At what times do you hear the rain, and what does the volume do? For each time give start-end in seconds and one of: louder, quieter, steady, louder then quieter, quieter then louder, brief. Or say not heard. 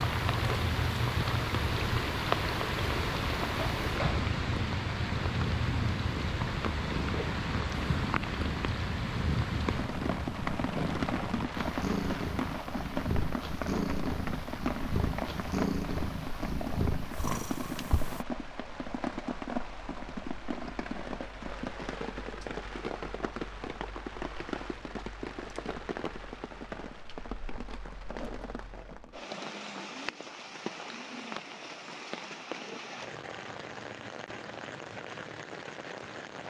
0.0-36.4 quieter.